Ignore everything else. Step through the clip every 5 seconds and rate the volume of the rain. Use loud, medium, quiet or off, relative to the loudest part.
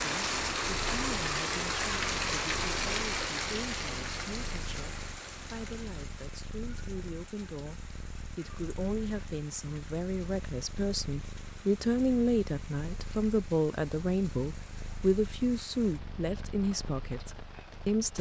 loud, quiet, quiet, quiet.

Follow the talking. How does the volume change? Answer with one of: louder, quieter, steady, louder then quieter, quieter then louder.
louder.